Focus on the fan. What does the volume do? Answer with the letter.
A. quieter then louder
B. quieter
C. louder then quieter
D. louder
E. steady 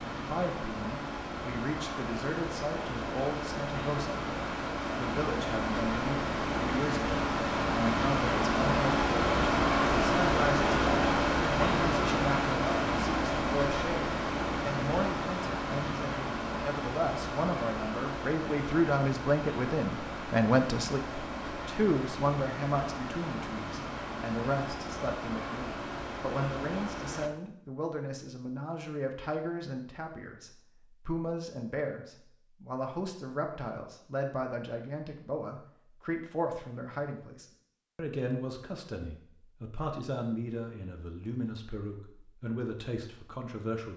C.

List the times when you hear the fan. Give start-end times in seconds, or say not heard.
0.0-27.3.